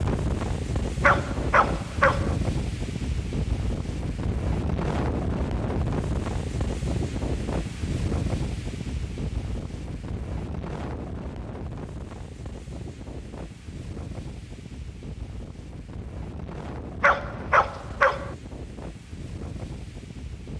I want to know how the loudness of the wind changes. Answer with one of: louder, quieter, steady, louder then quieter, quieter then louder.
quieter.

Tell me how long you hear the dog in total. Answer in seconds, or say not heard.
3 s.